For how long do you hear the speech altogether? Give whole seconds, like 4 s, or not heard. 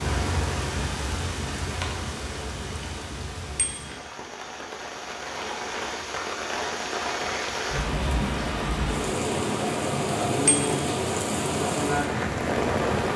not heard.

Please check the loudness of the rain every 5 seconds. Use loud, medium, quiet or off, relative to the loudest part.
medium, loud, loud.